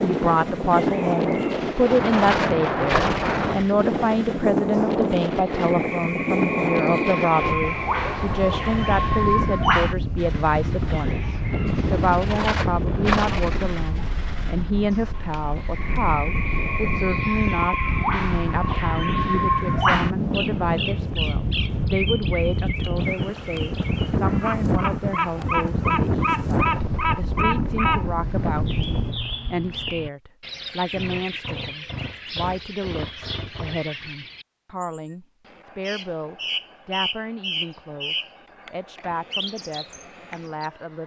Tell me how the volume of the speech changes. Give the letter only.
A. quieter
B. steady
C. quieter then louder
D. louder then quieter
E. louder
A.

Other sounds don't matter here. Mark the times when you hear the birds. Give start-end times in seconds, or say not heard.
0.0-41.0.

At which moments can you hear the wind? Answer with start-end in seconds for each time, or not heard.
0.0-29.1.